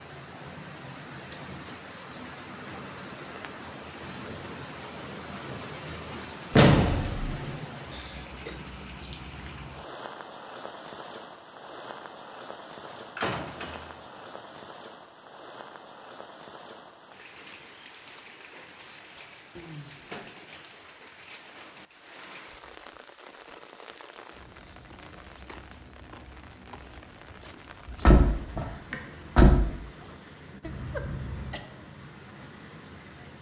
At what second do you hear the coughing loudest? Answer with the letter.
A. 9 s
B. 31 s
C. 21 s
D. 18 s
B.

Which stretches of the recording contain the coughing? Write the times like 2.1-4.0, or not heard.
7.9-8.6, 19.6-20.4, 30.6-31.6.